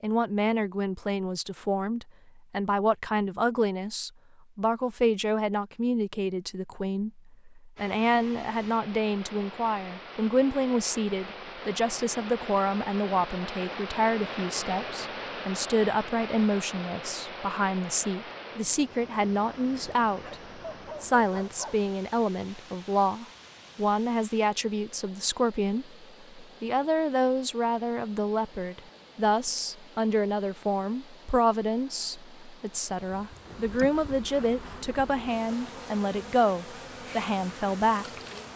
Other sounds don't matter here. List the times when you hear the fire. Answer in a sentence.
The fire can't be heard in this clip.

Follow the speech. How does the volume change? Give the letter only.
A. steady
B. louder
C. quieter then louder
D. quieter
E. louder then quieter
A.